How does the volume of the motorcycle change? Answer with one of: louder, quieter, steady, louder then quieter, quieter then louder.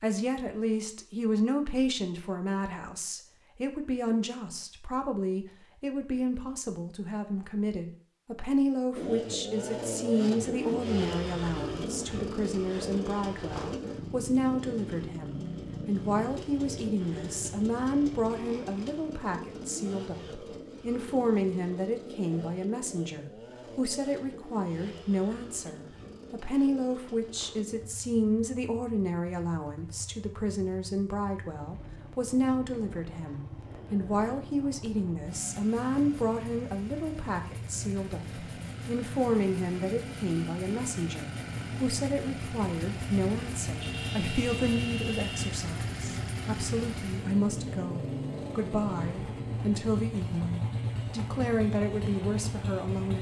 quieter then louder.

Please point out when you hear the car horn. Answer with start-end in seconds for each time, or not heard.
43.8-45.5.